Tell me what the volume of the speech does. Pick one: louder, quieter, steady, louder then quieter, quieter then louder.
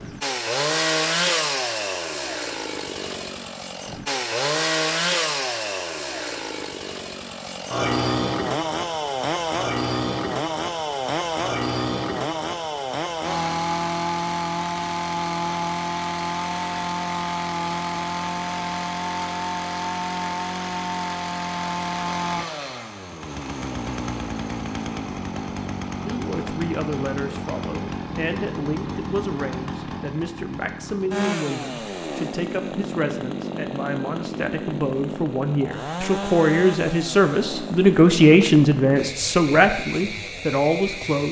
louder.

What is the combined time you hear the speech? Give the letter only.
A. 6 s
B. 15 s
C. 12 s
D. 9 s
B.